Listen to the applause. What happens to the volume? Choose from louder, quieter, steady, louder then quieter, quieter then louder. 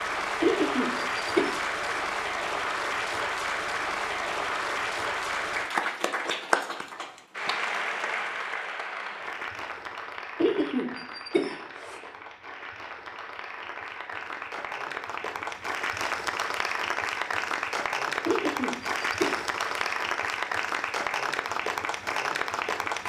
quieter then louder.